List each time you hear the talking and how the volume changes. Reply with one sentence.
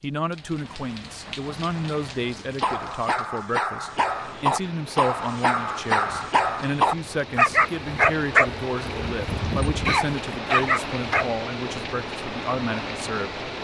The talking can be heard from 0.0 to 13.5 s, at a steady volume.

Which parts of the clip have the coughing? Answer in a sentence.
You can hear the coughing from 9.8 to 11.2 s.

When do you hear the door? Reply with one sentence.
The door can't be heard in this clip.